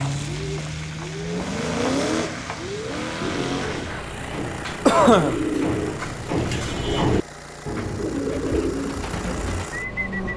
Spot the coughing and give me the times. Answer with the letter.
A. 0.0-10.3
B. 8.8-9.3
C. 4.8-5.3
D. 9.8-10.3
C.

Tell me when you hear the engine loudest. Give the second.
2 s.